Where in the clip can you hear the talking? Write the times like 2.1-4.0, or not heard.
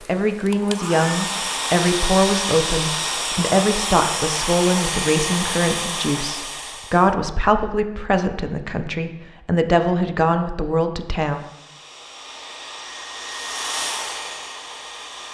0.1-11.4.